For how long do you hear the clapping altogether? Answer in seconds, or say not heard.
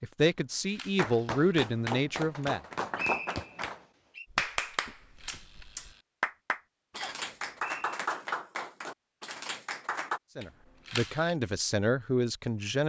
9 s.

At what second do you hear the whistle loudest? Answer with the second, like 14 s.
3 s.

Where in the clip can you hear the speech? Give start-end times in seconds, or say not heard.
0.0-2.6, 10.3-12.8.